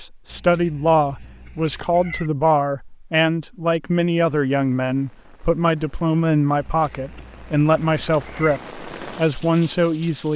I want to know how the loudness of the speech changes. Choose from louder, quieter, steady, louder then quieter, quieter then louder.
steady.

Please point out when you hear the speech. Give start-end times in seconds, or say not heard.
0.0-10.3.